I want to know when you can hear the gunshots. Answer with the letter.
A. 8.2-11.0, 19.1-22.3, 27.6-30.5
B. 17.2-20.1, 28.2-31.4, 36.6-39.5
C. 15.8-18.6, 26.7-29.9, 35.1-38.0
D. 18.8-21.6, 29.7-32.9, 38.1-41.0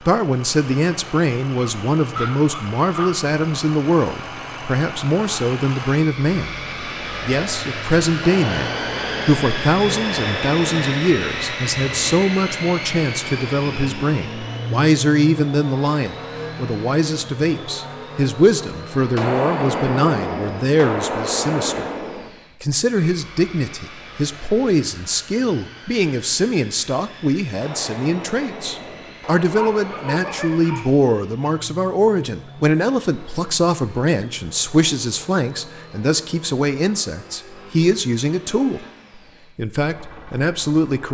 A.